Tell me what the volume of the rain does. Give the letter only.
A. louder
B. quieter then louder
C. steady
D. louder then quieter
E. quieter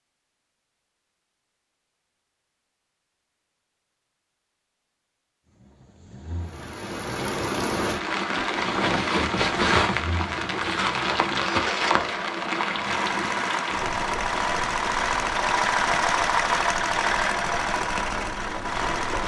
E.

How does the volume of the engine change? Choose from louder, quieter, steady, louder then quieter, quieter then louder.
louder.